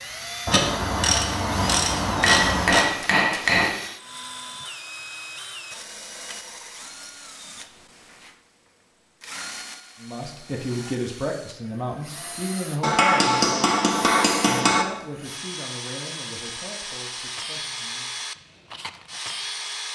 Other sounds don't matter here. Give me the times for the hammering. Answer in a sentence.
The hammering can be heard from 2.2 to 3.8 s and from 12.8 to 14.8 s.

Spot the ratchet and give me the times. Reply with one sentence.
The ratchet can be heard from 0.5 to 2.9 s.